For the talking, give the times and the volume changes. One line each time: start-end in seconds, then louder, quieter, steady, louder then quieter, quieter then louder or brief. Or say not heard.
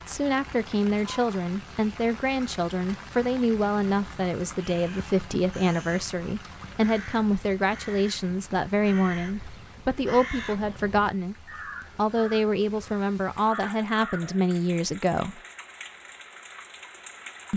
0.1-15.4 steady.